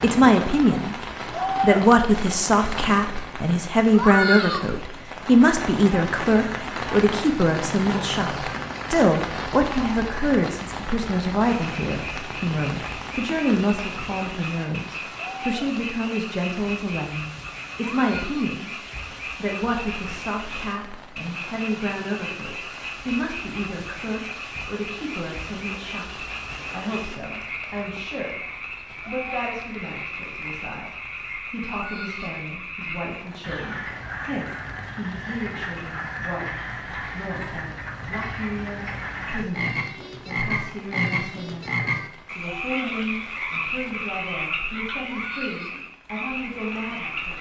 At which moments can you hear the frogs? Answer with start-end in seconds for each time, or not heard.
11.4-47.3.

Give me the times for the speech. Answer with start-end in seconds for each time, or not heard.
0.0-28.4, 29.1-47.3.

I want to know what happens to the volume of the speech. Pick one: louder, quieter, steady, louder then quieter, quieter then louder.
quieter.